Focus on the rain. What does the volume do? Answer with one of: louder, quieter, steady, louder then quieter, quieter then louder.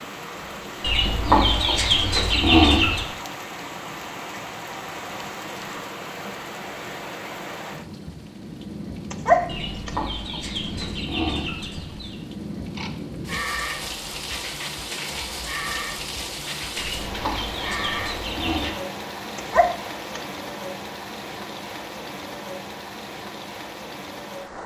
steady.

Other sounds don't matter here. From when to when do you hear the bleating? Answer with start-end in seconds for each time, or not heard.
12.8-18.8.